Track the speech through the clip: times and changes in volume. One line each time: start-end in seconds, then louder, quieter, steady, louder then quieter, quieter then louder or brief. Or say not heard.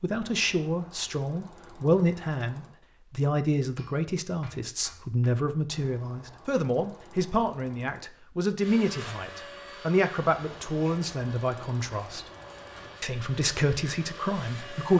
0.0-12.2 steady
13.0-14.9 brief.